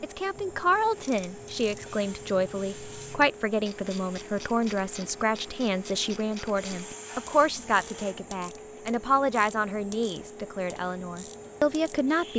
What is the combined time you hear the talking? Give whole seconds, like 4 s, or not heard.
12 s.